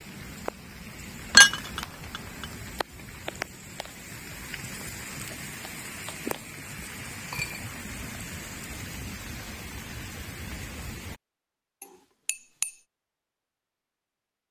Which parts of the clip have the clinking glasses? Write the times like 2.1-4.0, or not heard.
1.3-2.5, 7.2-7.6, 11.8-12.7.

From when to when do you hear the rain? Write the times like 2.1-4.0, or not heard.
0.0-11.2.